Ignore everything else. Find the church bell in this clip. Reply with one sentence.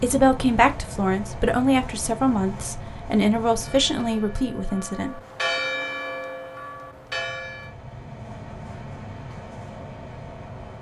You can hear the church bell from 3.6 to 7.8 s.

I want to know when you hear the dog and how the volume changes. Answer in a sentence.
You can't hear the dog here.